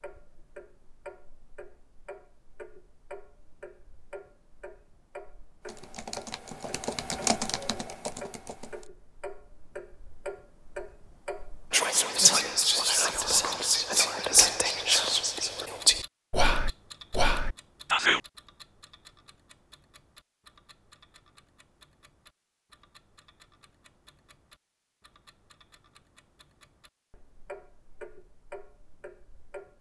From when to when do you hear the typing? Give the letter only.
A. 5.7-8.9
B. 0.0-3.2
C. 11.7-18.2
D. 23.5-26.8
A.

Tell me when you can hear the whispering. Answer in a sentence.
The whispering can be heard from 11.7 to 18.2 s.